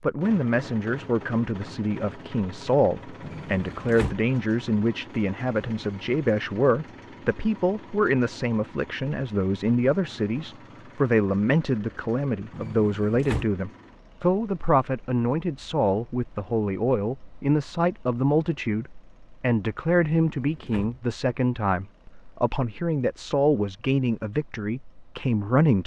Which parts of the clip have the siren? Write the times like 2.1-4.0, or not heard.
not heard.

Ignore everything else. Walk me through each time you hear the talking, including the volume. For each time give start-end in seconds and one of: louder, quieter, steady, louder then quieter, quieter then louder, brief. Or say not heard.
0.0-25.8 steady.